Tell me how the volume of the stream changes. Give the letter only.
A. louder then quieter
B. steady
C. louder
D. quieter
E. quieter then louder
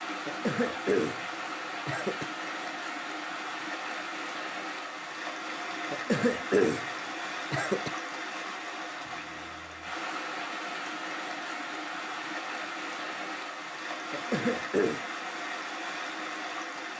B.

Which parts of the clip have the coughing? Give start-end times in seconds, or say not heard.
0.2-2.2, 5.9-7.9, 14.1-15.0.